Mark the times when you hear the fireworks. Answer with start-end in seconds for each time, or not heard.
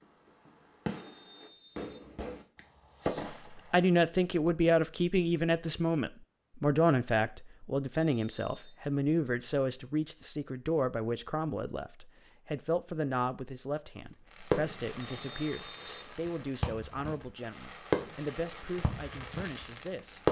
0.5-3.5, 14.3-20.2.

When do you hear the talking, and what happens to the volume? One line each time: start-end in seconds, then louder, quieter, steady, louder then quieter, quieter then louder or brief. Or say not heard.
3.1-20.2 quieter.